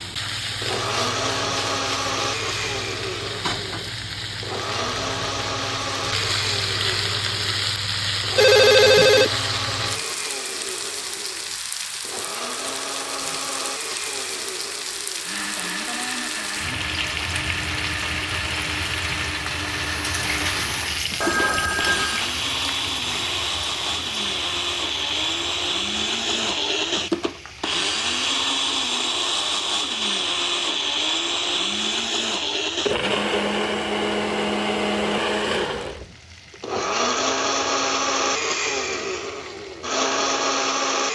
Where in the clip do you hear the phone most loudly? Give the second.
9 s.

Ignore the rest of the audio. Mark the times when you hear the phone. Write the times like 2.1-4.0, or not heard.
8.3-9.3, 21.2-22.3.